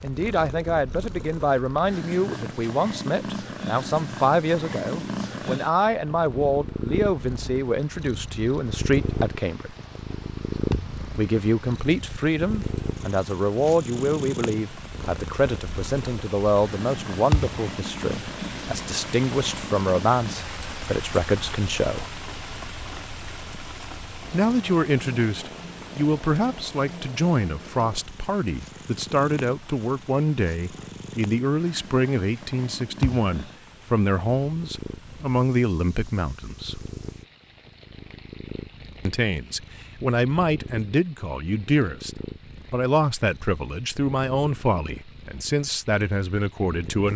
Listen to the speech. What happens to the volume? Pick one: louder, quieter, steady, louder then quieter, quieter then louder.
steady.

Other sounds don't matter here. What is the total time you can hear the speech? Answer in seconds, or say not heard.
41 s.